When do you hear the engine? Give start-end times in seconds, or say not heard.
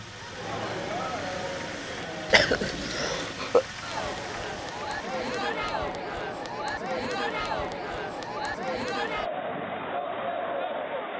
0.0-5.5.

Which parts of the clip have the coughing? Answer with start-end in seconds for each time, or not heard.
2.3-3.6.